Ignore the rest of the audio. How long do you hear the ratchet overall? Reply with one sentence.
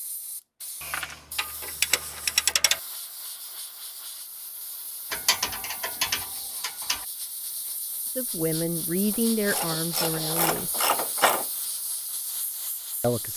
The ratchet can be heard for 6 seconds in total.